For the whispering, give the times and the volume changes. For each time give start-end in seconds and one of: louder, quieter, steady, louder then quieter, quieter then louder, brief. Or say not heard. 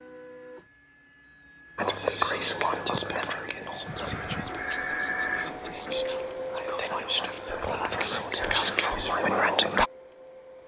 1.8-9.8 quieter then louder.